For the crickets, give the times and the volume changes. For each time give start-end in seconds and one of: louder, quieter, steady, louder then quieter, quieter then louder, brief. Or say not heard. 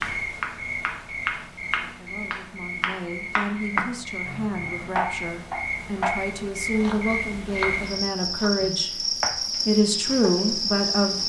0.0-11.2 louder.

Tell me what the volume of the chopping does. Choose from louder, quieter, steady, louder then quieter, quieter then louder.
quieter.